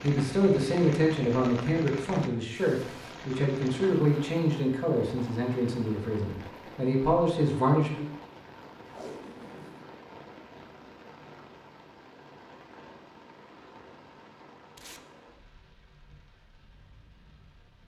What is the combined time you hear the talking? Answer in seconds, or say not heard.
8 s.